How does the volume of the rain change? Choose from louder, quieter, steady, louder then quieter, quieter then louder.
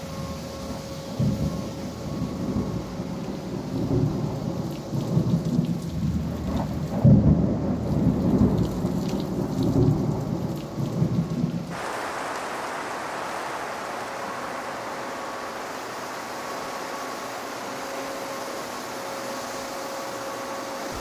louder then quieter.